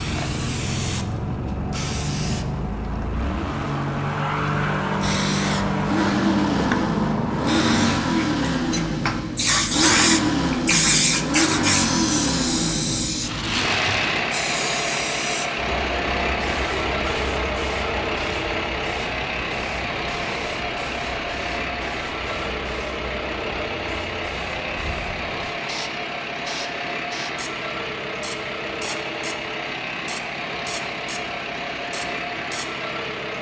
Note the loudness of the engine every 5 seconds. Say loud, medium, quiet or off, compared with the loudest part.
medium, loud, loud, loud, medium, medium, medium.